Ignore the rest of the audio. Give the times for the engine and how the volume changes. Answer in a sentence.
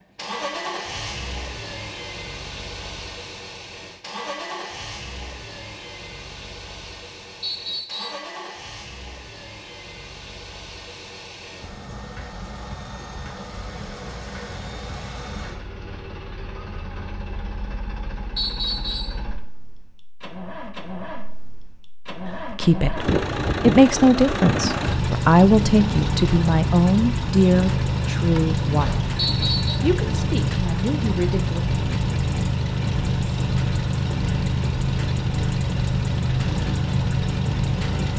The engine can be heard from 0.1 to 38.1 s, getting louder.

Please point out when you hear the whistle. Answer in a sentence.
You can hear the whistle from 7.4 to 8.2 s, from 18.4 to 19.2 s and from 29.1 to 29.8 s.